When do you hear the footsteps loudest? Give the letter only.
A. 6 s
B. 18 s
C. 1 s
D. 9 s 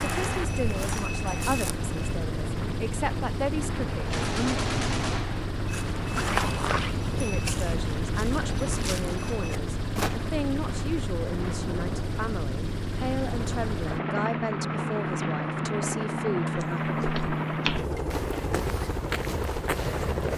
A.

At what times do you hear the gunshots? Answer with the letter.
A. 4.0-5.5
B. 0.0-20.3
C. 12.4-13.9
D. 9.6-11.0
A.